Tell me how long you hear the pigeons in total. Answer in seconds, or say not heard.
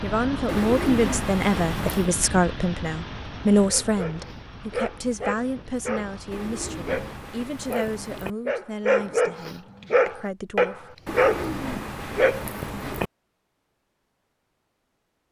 6 s.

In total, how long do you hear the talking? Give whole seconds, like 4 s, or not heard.
11 s.